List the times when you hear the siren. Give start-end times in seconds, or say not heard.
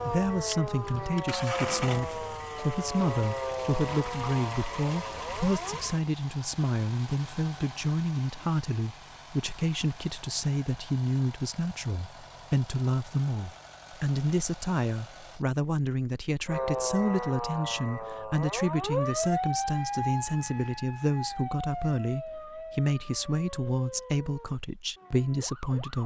0.0-5.8, 16.4-26.0.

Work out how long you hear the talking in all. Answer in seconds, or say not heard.
26 s.